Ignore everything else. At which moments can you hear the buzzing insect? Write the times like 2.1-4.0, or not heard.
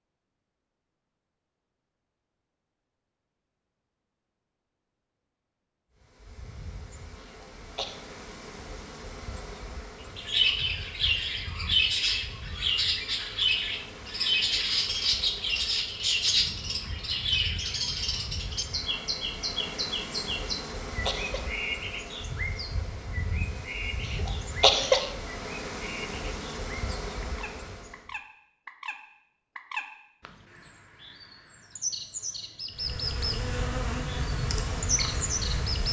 6.0-28.1, 32.8-35.8.